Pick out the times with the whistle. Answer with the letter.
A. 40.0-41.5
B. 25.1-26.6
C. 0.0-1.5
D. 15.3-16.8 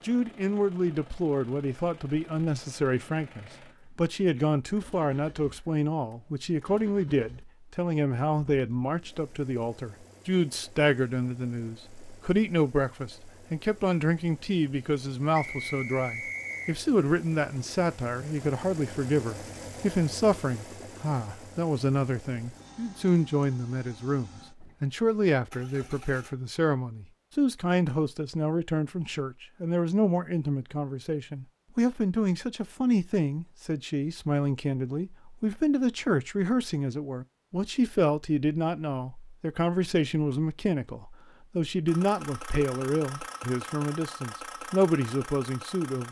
D.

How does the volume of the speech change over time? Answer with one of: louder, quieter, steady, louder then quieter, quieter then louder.
steady.